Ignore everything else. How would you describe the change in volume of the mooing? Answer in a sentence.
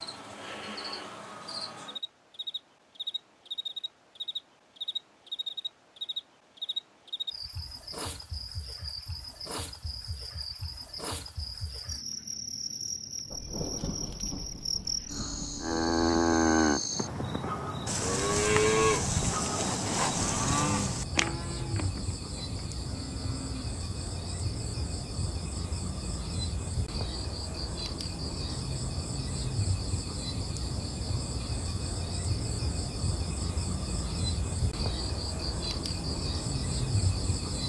The volume of the mooing goes down.